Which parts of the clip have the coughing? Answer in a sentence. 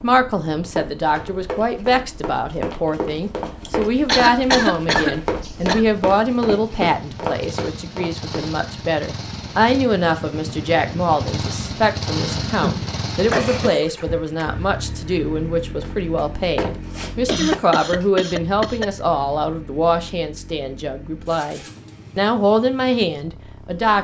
The coughing can be heard from 3.6 to 5.8 s, from 12.4 to 13.8 s and from 17.2 to 18.9 s.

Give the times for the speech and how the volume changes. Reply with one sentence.
The speech can be heard from 0.0 to 23.9 s, at a steady volume.